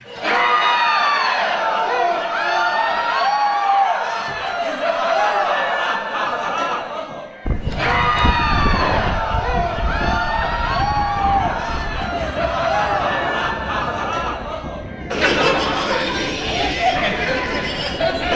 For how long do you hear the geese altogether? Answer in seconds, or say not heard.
not heard.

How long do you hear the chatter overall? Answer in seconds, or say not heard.
18 s.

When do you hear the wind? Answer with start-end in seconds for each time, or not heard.
7.5-18.3.